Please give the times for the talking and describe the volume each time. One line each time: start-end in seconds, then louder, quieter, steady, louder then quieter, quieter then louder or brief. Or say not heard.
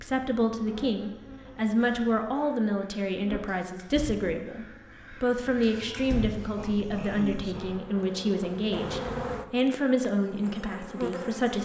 0.0-11.6 steady.